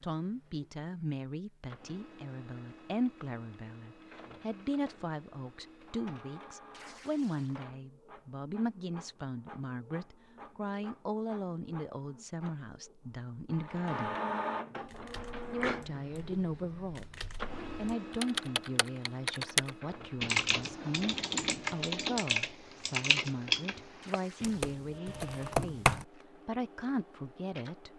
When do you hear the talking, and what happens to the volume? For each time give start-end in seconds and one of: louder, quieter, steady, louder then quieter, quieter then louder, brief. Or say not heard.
0.0-14.2 steady
15.5-27.9 steady.